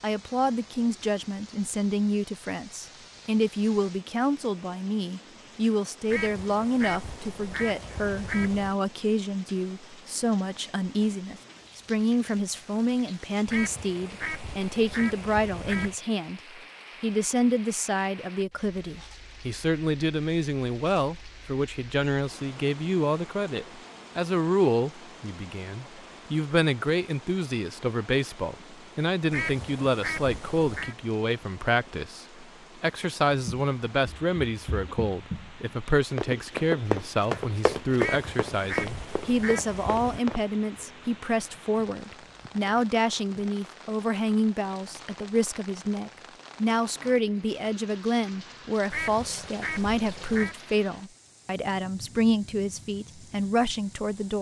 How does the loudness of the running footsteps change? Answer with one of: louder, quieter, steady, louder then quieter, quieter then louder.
louder then quieter.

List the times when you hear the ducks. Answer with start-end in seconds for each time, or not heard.
6.0-8.8, 13.4-15.9, 29.3-30.9, 38.0-40.2, 48.9-50.5.